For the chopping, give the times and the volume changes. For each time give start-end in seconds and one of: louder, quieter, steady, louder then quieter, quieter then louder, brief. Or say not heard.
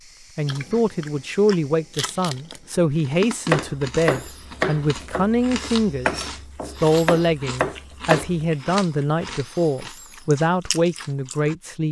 3.5-8.5 quieter then louder.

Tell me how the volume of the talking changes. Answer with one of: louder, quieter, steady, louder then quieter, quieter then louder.
steady.